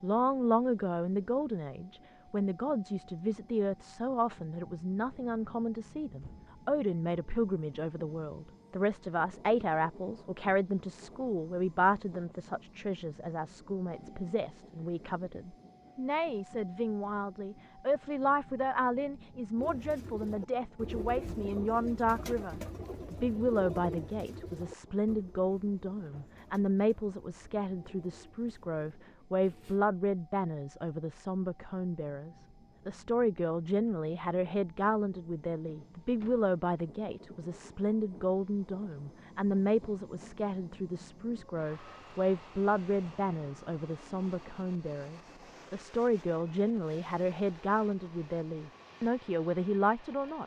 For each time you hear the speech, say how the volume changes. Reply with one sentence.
You can hear the speech from 0.0 to 50.4 s, at a steady volume.